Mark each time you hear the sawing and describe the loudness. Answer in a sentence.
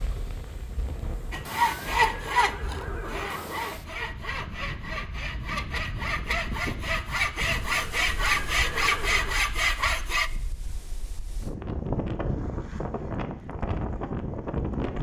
The sawing can be heard from 1.3 to 10.3 s, getting quieter then louder.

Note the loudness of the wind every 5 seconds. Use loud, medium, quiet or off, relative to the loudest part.
medium, medium, loud.